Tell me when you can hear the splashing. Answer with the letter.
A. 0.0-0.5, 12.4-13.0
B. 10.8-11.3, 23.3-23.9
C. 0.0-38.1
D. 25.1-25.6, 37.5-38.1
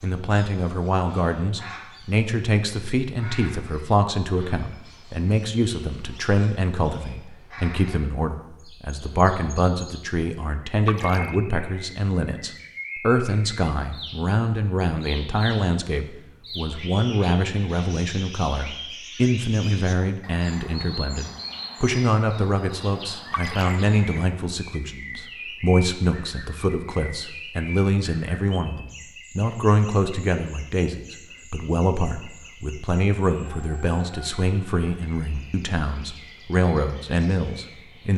B.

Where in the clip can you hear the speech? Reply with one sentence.
The speech can be heard from 0.0 to 38.1 s.